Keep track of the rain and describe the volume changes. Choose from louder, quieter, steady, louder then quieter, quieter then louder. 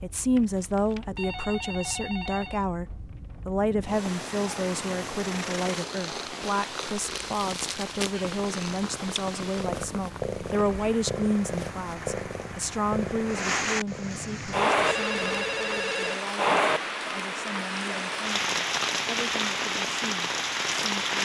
louder.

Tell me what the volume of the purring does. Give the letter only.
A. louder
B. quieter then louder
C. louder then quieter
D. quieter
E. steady
E.